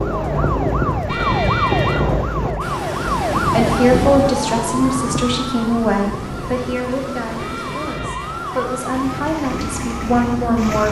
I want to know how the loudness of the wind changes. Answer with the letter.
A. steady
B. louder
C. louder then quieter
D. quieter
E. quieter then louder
D.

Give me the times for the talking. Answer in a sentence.
You can hear the talking from 3.5 to 10.8 s.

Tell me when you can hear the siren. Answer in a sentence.
The siren can be heard from 0.0 to 10.8 s.